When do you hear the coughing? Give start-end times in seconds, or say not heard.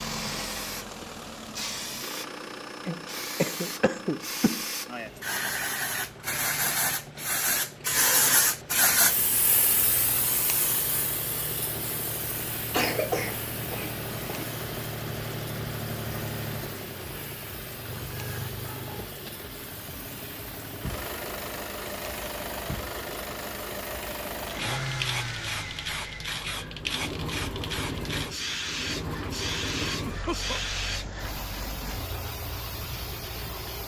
2.9-4.7, 12.7-14.4, 29.8-30.6.